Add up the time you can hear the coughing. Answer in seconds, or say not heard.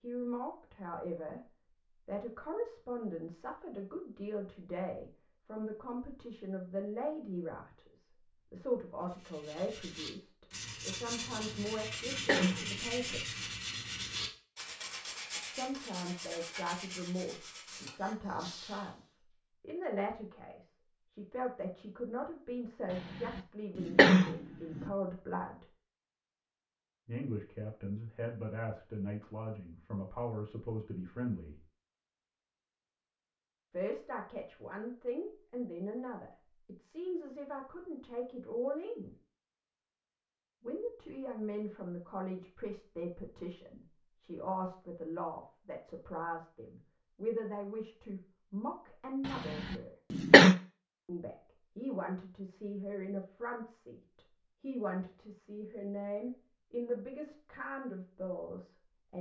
5 s.